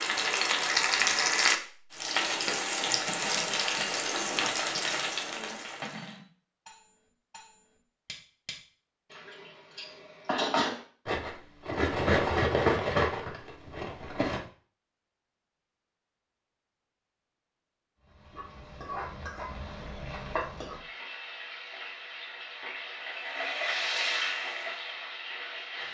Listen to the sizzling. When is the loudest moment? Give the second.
1 s.